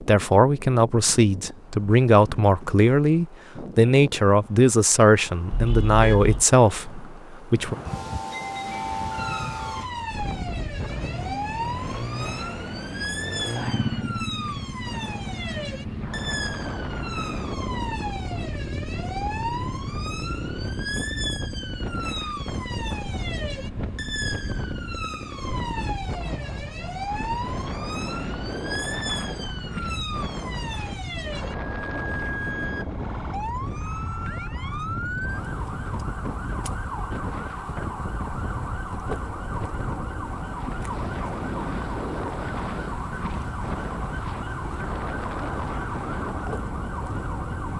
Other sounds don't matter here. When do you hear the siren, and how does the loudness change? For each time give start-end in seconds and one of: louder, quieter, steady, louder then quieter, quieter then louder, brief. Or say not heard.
9.1-47.7 steady.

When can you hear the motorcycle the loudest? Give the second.
14 s.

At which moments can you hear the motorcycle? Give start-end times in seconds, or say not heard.
8.7-25.9.